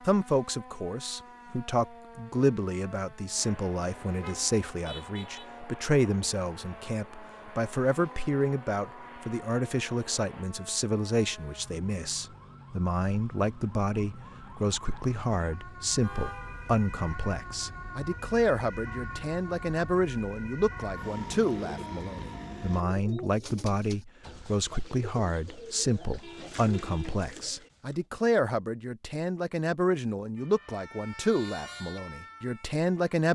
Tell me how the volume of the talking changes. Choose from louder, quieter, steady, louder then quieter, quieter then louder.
steady.